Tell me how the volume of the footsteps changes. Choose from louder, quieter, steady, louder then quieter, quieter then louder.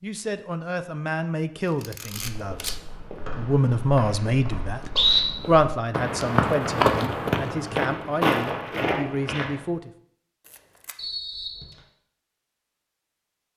louder.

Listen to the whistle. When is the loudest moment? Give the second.
5 s.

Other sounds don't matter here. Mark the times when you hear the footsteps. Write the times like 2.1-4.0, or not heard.
2.1-9.7.